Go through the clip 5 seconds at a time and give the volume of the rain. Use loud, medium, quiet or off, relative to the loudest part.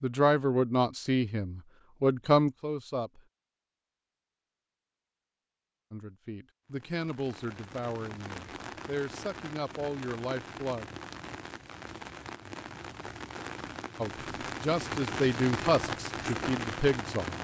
off, medium, medium, loud.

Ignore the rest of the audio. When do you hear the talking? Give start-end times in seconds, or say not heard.
0.0-3.2, 5.9-10.8, 14.0-17.3.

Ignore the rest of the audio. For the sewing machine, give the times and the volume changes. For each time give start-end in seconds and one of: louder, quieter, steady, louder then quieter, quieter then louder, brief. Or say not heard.
not heard.